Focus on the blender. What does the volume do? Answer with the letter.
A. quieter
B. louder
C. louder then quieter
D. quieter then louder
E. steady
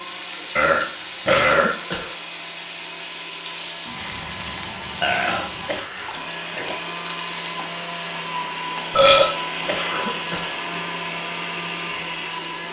B.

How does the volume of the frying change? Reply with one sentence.
The volume of the frying goes down.